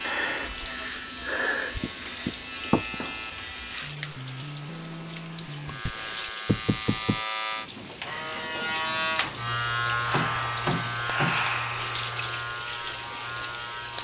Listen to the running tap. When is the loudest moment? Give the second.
12 s.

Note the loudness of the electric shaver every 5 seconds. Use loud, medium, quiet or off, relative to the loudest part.
medium, loud, loud.